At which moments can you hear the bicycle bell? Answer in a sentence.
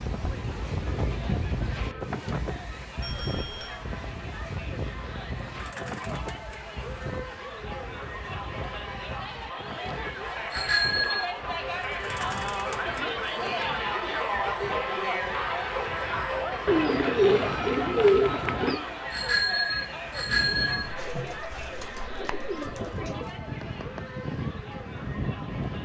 You can hear the bicycle bell from 3.0 to 3.8 s, from 10.5 to 11.2 s and from 19.1 to 20.9 s.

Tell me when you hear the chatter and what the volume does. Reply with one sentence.
You can hear the chatter from 0.0 to 25.7 s, getting louder then quieter.